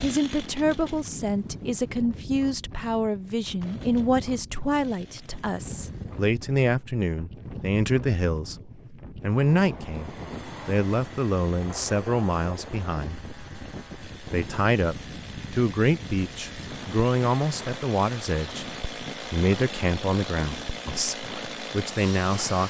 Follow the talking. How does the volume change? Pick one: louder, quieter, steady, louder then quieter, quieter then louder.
steady.